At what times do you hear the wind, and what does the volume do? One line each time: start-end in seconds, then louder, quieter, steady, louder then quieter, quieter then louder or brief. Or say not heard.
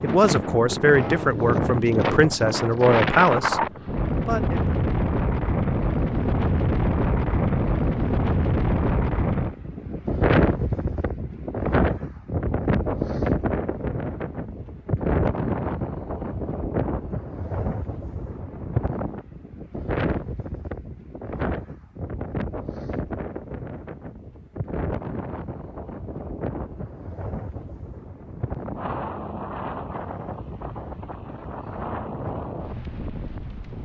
0.0-33.8 quieter.